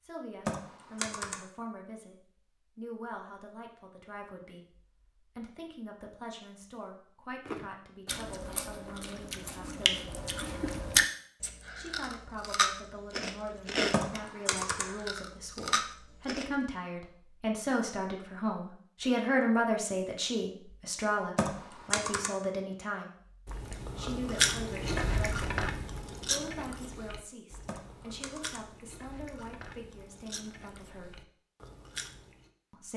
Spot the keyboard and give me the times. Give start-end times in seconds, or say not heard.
0.5-1.4, 13.9-14.9, 21.4-22.4, 27.6-28.6.